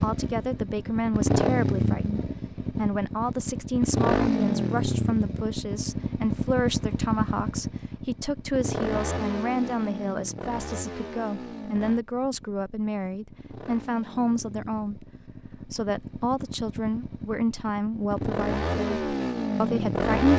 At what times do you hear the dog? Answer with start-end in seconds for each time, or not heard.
not heard.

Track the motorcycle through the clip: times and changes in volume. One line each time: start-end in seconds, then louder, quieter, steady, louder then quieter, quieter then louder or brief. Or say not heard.
0.0-20.3 quieter then louder.